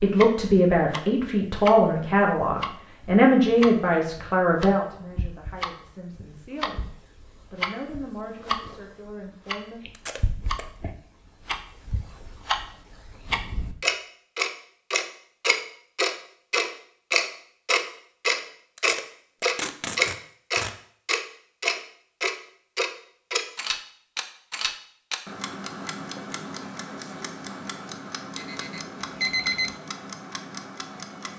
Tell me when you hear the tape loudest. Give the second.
20 s.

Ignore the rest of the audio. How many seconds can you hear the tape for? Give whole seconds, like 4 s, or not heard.
3 s.